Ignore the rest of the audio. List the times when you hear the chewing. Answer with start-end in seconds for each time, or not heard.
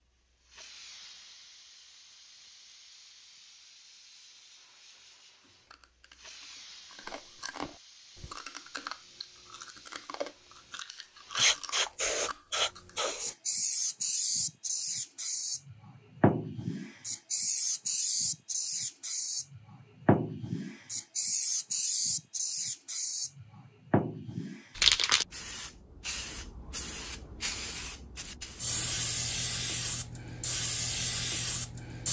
5.4-13.1.